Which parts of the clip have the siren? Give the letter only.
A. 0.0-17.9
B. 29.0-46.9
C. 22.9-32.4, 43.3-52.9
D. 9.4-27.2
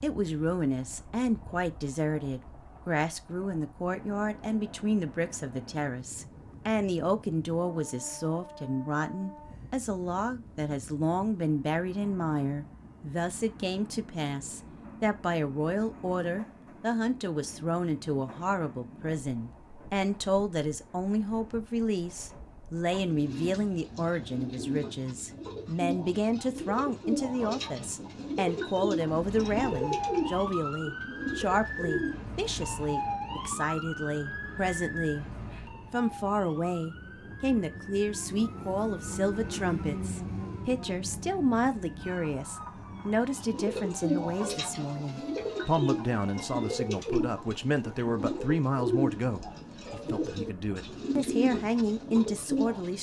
B.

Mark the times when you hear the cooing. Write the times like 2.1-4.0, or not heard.
22.9-32.4, 43.3-52.9.